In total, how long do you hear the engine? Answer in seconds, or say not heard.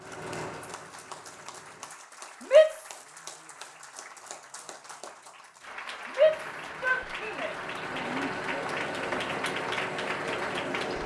7 s.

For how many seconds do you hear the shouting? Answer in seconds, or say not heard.
3 s.